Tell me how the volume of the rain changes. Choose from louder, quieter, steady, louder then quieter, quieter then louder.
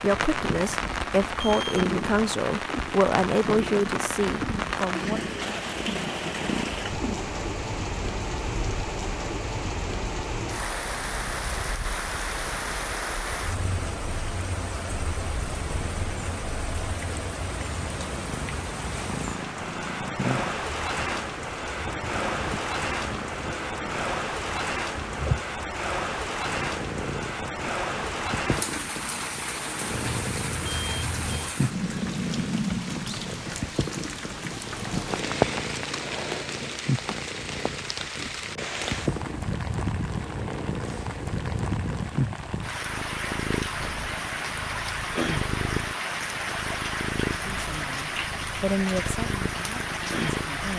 steady.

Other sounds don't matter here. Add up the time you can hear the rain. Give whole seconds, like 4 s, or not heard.
51 s.